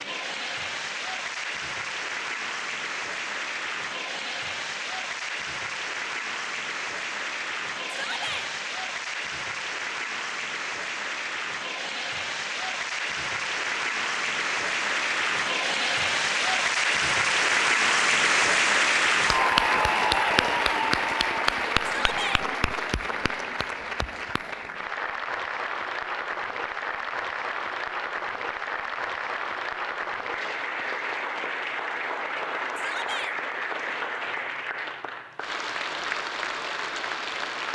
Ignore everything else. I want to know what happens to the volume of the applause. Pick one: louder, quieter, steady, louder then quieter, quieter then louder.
louder then quieter.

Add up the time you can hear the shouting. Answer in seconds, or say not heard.
2 s.